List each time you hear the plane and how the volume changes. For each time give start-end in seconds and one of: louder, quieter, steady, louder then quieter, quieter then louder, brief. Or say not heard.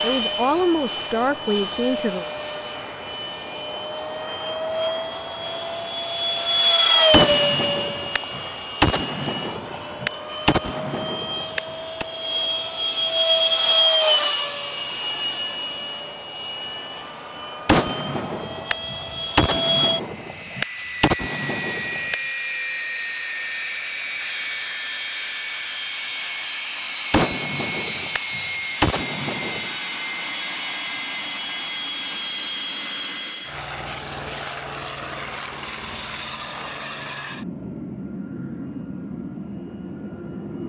0.0-40.6 quieter.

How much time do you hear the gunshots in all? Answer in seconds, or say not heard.
12 s.